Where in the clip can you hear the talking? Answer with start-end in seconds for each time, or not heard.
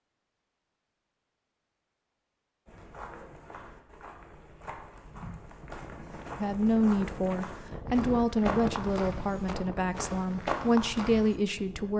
6.3-11.9.